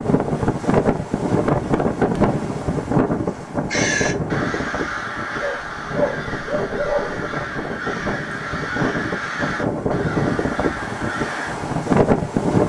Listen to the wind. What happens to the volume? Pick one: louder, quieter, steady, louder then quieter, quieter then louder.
quieter then louder.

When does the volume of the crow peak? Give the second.
4 s.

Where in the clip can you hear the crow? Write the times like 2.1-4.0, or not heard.
3.7-11.6.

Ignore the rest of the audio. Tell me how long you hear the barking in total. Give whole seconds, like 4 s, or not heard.
2 s.